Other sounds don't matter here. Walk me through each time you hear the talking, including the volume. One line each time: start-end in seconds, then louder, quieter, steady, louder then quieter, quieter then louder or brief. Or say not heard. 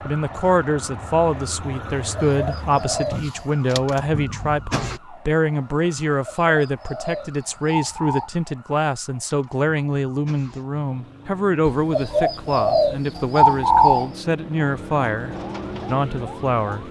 0.1-16.8 steady.